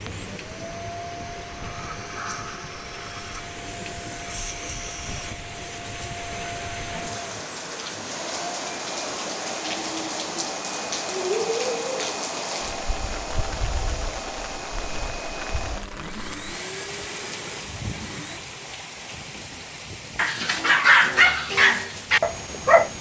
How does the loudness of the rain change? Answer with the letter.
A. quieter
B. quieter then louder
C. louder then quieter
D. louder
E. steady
C.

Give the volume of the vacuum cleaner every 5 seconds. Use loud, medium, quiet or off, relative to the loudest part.
loud, loud, loud, loud, off.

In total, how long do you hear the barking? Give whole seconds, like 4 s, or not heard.
3 s.